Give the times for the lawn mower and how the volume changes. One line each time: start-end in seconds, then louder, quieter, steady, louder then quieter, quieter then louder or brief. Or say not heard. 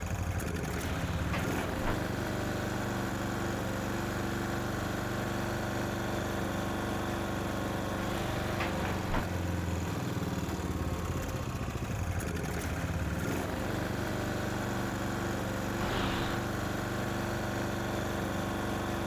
0.0-19.0 steady.